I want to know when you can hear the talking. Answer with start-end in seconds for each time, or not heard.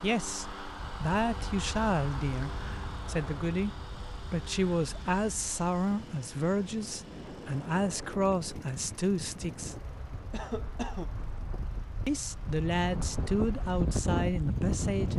0.0-9.9, 12.1-15.1.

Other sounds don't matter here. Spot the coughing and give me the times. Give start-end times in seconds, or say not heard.
10.3-11.1.